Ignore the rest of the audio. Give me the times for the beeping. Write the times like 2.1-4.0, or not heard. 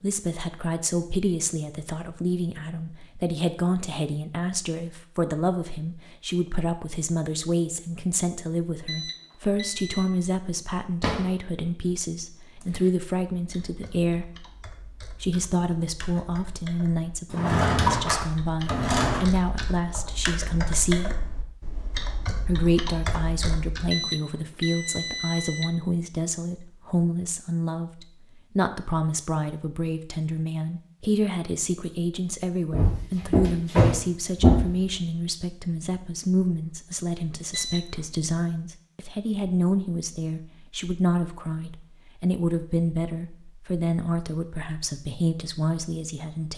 8.8-10.1, 23.9-25.8, 37.5-38.0.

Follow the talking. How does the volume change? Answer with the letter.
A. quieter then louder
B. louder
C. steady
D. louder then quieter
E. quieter
C.